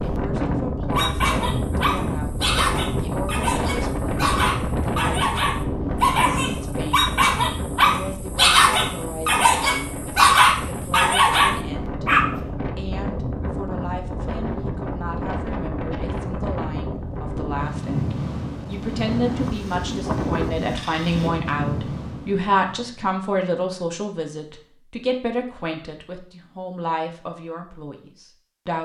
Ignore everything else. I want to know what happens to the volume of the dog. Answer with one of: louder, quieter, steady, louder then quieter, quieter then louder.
louder.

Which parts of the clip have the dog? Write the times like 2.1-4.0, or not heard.
0.9-12.4.